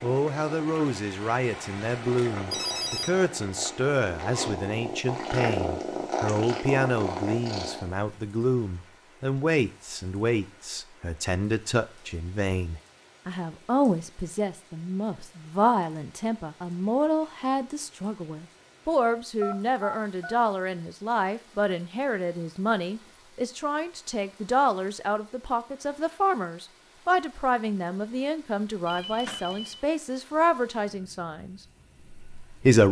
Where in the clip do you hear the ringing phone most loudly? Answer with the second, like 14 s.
3 s.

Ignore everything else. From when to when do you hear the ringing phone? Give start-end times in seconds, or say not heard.
2.5-3.2, 19.4-20.4, 28.9-29.8.